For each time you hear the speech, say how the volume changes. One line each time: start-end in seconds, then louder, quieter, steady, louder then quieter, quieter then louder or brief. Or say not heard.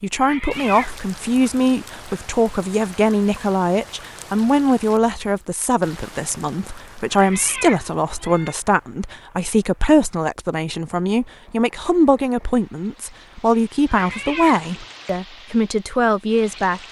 0.0-16.8 steady.